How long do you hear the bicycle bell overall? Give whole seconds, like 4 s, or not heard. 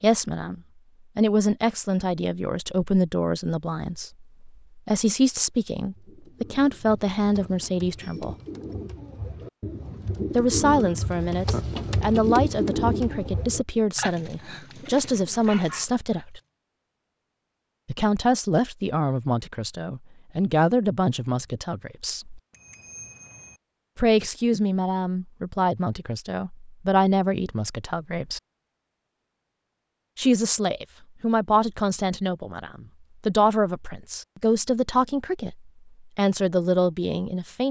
2 s.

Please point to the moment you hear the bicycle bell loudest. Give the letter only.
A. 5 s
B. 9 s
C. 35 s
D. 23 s
D.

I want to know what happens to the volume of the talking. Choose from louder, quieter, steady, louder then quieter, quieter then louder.
steady.